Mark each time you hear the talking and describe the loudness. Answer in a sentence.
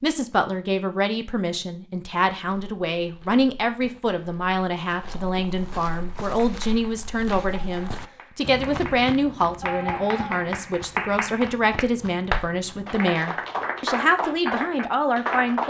The talking can be heard from 0.0 to 15.6 s, at a steady volume.